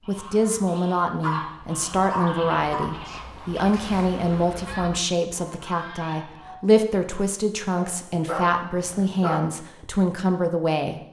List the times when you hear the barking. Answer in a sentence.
You can hear the barking from 1.2 to 2.9 s and from 7.8 to 9.4 s.